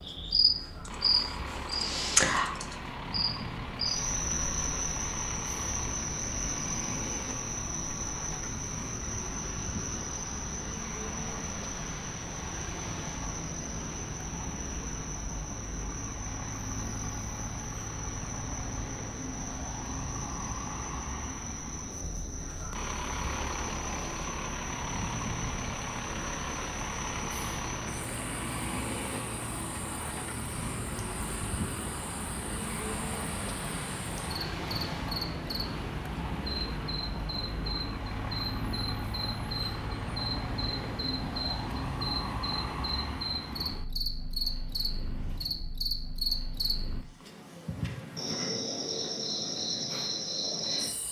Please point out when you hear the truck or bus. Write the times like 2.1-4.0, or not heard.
0.0-47.0.